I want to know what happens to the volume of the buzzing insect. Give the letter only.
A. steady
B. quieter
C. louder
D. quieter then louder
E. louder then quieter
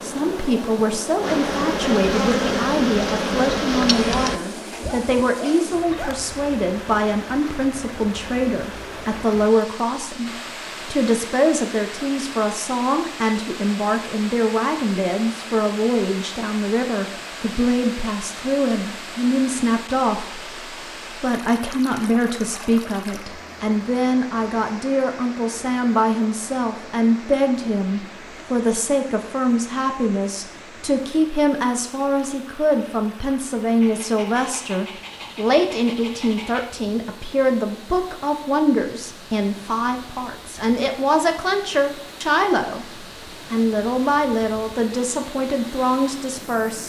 C.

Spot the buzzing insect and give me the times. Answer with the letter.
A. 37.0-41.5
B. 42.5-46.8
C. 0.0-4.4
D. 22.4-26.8
C.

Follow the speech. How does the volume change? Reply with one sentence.
The volume of the speech stays about the same.